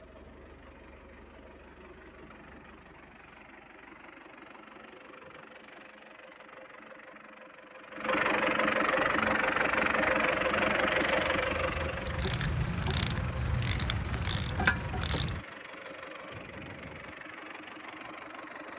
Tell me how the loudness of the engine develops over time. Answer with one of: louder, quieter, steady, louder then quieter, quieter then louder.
louder then quieter.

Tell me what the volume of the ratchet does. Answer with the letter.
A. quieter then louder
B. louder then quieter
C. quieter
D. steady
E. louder
E.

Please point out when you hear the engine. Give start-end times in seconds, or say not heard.
0.0-18.7.